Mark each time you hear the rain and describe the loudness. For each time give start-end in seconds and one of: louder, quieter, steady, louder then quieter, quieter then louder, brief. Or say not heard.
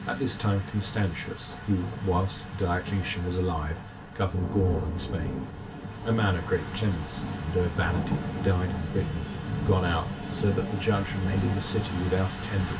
0.0-12.7 louder.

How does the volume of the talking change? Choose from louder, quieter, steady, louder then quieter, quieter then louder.
steady.